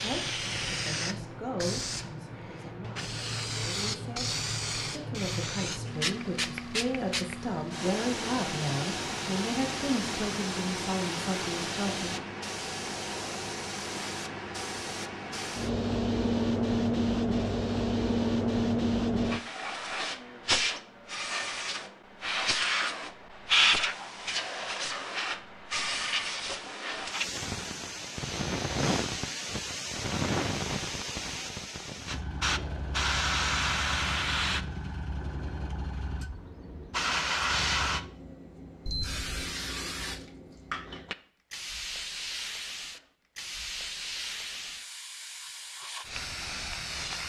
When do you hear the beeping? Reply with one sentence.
You can hear the beeping from 38.9 to 39.5 s.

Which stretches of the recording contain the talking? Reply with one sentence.
You can hear the talking from 0.0 to 4.3 s and from 4.9 to 12.1 s.